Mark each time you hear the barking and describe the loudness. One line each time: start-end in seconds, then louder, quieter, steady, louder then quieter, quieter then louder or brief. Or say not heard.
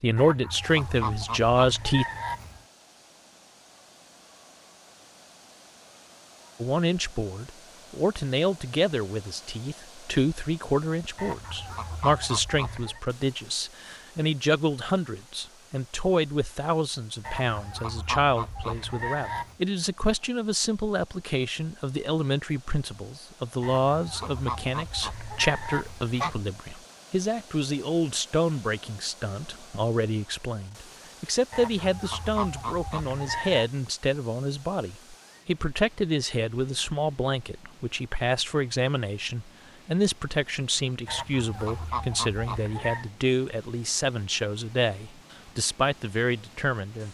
not heard.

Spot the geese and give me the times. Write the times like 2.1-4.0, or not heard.
0.1-2.6, 11.2-13.0, 17.2-19.6, 23.6-26.4, 31.5-33.7, 41.0-43.0.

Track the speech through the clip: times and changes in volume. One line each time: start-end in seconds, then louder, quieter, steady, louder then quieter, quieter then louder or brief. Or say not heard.
0.0-2.0 brief
6.6-47.0 steady.